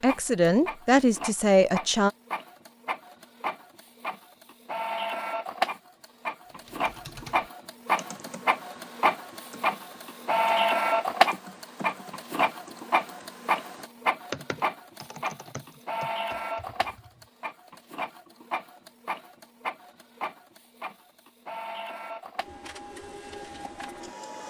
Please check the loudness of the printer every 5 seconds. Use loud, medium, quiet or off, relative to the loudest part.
medium, loud, loud, medium, quiet.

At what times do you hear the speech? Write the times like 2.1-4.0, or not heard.
0.0-2.1.